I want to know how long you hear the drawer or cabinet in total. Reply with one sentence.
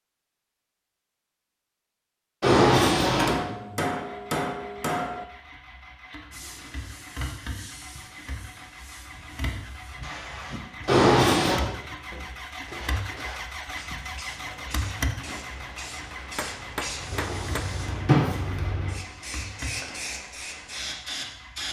The drawer or cabinet can be heard for 3 seconds in total.